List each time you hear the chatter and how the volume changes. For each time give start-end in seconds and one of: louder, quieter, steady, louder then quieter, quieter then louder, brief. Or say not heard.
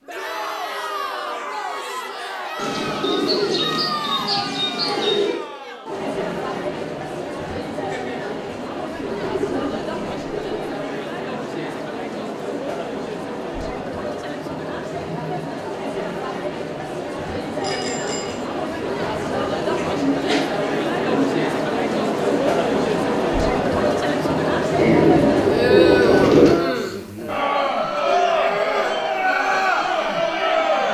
0.1-30.8 louder.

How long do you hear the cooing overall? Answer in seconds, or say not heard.
8 s.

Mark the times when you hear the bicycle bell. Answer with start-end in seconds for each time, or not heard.
17.6-18.4.